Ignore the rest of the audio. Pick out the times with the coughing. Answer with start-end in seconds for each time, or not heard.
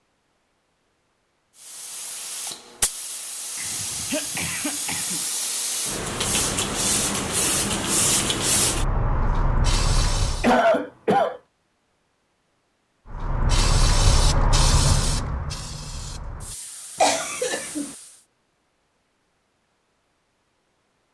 3.5-5.2, 10.4-11.4, 17.0-17.9.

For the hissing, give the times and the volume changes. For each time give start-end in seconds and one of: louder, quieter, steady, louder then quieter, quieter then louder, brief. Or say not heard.
1.6-10.6 louder
13.1-18.2 quieter.